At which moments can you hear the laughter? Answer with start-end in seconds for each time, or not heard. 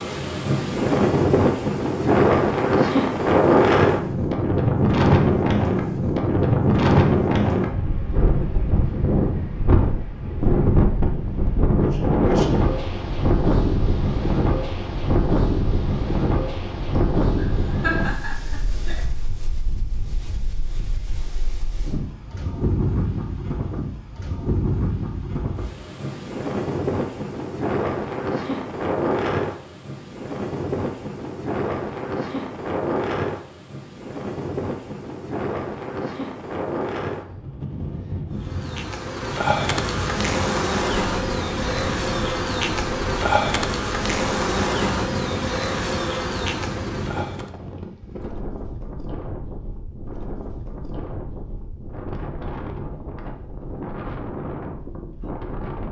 17.4-19.1.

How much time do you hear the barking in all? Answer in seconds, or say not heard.
not heard.